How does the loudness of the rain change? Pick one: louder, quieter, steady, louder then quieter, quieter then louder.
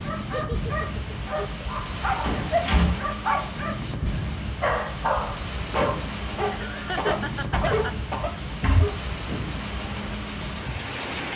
steady.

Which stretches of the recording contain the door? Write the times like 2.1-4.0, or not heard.
2.2-3.0, 8.4-8.9.